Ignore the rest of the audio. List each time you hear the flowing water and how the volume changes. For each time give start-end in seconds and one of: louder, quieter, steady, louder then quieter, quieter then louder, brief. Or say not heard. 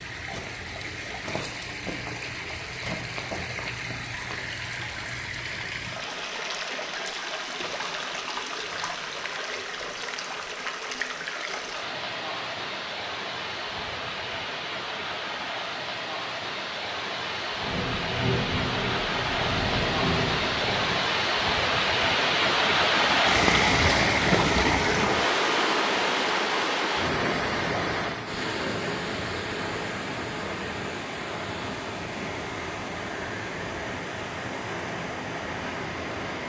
0.0-36.4 louder then quieter.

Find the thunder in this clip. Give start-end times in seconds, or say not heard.
17.6-21.0.